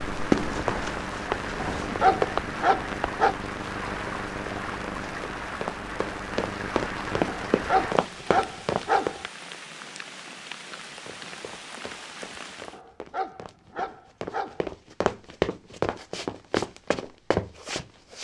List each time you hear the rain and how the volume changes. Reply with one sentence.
You can hear the rain from 0.0 to 12.8 s, getting quieter.